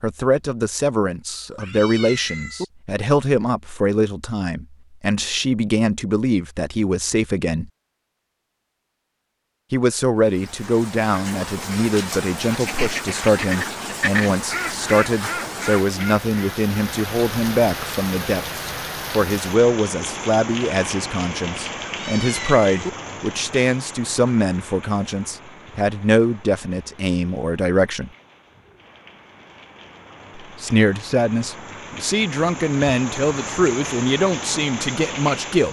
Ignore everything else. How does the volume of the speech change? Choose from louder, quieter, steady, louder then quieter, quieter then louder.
steady.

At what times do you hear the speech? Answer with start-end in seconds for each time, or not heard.
0.0-7.7, 9.7-28.1, 30.6-35.6.